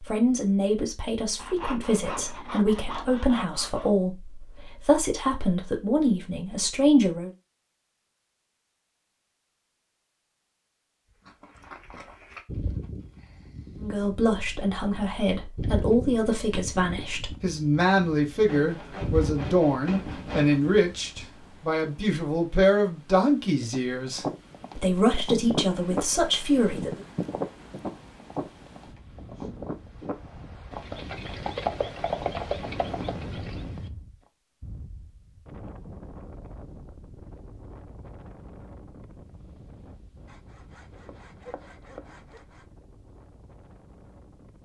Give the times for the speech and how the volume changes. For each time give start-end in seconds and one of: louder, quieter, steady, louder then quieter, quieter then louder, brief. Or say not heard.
0.0-7.3 steady
13.8-27.0 steady.